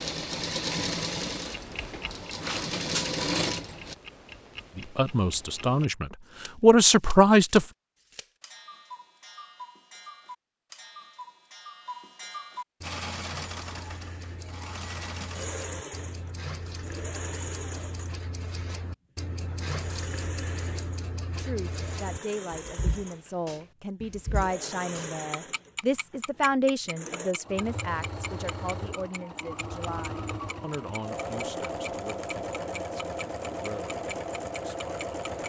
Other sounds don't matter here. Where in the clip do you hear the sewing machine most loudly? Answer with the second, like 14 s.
3 s.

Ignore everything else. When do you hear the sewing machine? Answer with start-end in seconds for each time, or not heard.
0.0-4.0, 12.8-35.4.